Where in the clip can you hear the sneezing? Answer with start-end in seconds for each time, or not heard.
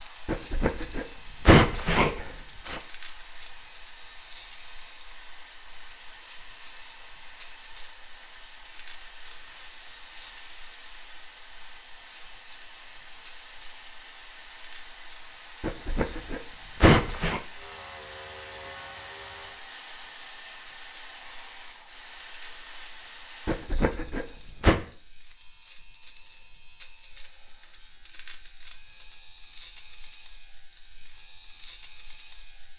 0.2-2.8, 15.6-17.4, 23.4-24.8.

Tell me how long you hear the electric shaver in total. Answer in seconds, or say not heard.
33 s.